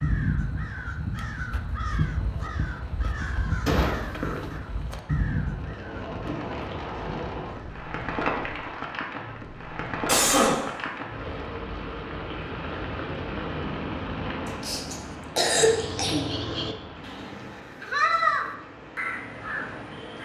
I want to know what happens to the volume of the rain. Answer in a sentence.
The volume of the rain goes up, then down.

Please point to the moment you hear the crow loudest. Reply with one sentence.
The volume of the crow peaks at 18 seconds.